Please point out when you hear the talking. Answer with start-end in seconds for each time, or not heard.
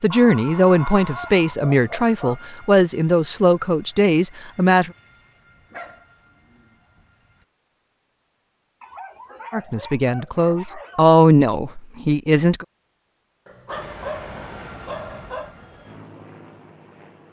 0.0-4.9, 9.5-12.7.